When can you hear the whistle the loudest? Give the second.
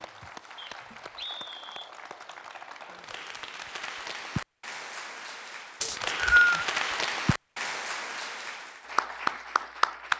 6 s.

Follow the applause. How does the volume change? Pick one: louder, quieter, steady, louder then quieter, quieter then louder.
louder.